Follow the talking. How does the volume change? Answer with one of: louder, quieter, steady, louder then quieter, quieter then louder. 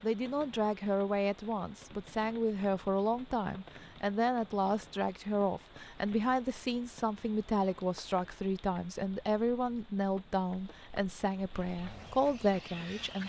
steady.